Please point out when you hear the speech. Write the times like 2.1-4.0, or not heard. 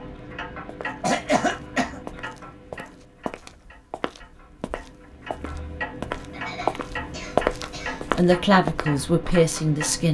8.1-10.0.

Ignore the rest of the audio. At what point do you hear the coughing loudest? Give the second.
1 s.